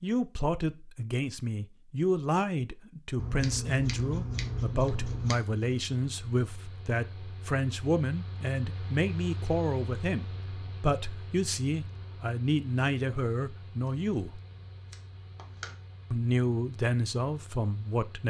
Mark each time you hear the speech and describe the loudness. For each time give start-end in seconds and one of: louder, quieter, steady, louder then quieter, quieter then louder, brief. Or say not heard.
0.0-14.4 steady
16.1-18.2 brief.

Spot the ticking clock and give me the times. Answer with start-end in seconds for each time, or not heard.
not heard.